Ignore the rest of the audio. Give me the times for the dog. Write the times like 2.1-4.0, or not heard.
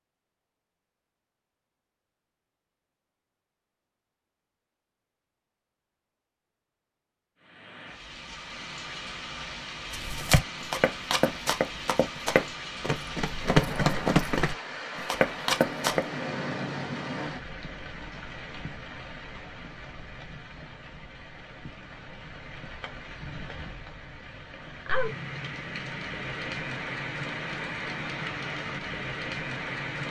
not heard.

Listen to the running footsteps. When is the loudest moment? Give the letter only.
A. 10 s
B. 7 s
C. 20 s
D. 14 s
D.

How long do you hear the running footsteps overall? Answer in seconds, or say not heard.
6 s.